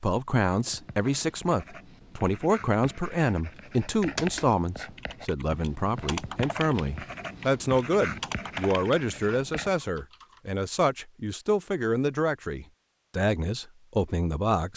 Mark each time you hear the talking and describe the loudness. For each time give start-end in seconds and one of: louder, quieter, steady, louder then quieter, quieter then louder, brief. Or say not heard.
0.0-14.7 steady.